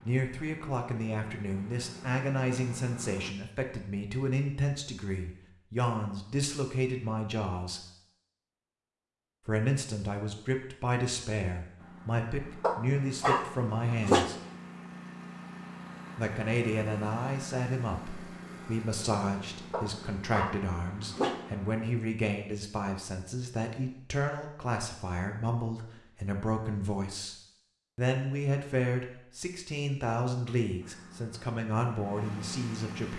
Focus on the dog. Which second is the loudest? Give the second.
14 s.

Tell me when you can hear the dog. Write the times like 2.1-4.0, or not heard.
12.6-14.3, 19.7-21.4.